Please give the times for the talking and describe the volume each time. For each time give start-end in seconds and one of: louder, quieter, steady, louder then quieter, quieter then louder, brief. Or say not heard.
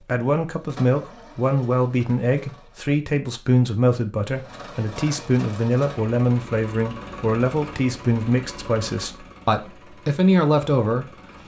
0.0-11.2 steady.